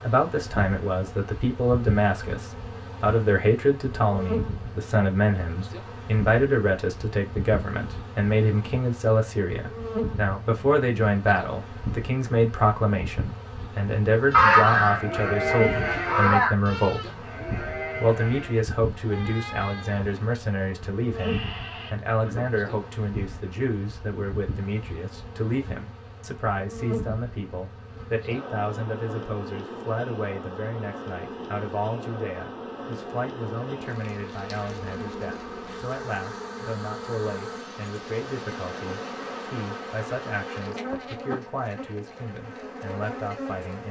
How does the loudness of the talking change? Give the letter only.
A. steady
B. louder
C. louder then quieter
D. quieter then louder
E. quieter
E.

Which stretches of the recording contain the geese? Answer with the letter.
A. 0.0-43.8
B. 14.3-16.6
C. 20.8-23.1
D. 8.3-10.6
B.